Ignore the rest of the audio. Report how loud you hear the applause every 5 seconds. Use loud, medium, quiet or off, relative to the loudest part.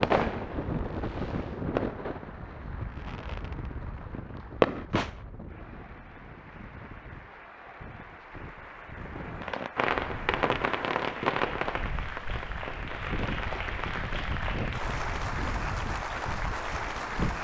quiet, quiet, loud, loud.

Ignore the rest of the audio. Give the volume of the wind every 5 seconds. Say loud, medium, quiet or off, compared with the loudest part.
loud, medium, loud, loud.